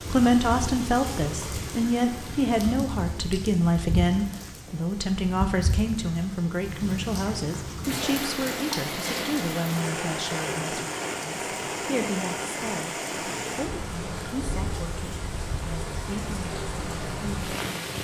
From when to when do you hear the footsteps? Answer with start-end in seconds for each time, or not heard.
not heard.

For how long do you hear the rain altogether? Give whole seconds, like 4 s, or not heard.
18 s.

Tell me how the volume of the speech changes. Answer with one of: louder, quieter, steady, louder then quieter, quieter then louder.
quieter.